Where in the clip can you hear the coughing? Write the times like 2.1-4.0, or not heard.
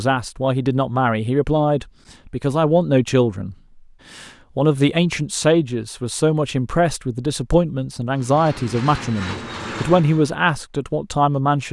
not heard.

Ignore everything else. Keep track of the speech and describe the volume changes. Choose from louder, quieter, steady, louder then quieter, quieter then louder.
steady.